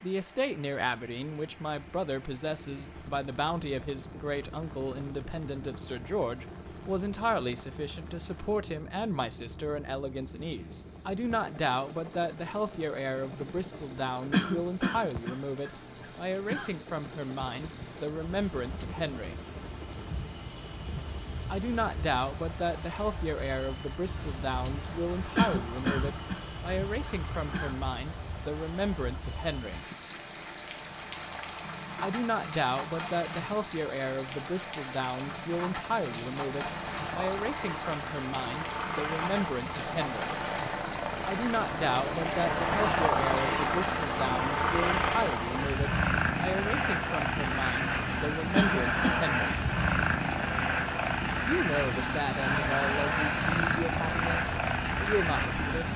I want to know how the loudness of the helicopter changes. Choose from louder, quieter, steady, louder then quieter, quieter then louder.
louder.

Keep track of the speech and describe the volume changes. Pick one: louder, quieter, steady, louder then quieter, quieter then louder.
steady.